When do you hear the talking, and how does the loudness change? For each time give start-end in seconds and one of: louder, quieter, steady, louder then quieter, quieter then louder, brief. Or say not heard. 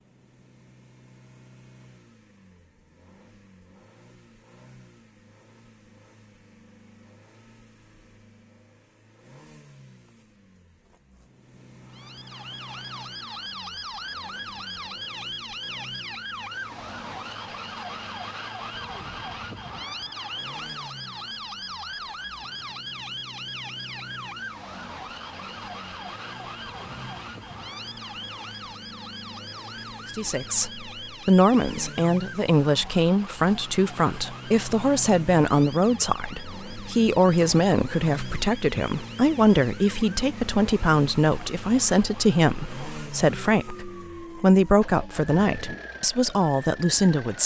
30.1-47.4 steady.